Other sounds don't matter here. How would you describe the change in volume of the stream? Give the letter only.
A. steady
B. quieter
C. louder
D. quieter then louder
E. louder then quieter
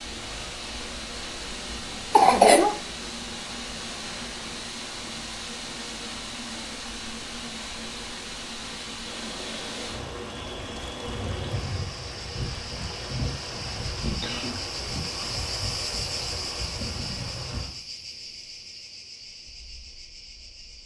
A.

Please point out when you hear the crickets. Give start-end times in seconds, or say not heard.
9.1-20.8.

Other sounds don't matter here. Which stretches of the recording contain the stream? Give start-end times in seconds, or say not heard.
0.0-17.7.